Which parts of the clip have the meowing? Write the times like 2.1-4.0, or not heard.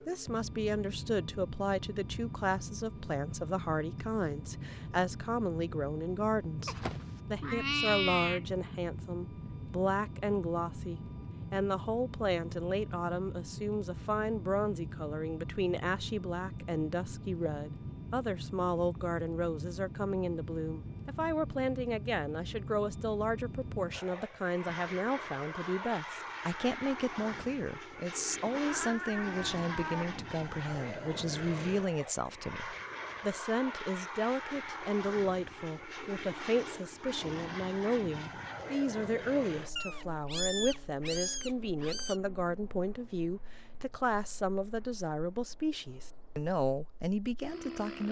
6.7-8.4, 28.5-30.1, 39.8-42.2.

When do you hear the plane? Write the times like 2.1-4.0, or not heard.
0.0-48.0.